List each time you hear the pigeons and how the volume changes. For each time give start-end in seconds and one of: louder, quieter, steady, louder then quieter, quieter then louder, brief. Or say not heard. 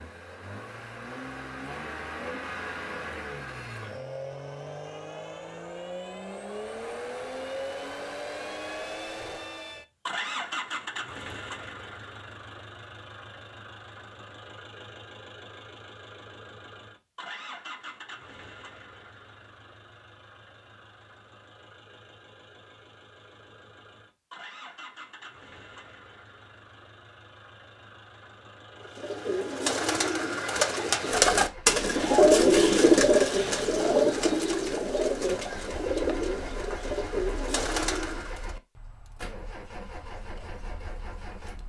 28.8-38.5 louder then quieter.